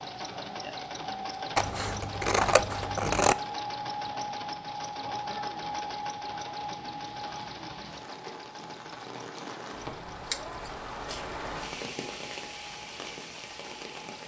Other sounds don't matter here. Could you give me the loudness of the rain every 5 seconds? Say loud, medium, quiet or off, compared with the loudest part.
quiet, medium, loud.